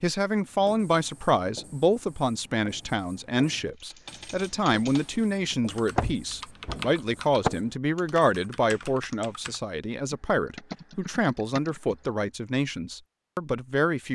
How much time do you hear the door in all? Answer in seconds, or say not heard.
2 s.